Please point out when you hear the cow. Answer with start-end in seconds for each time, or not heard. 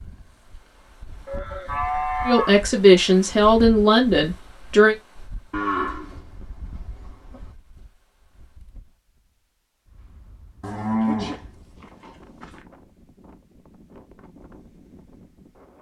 1.2-2.5, 5.5-7.5, 10.6-12.6.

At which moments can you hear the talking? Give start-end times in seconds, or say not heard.
2.2-5.0.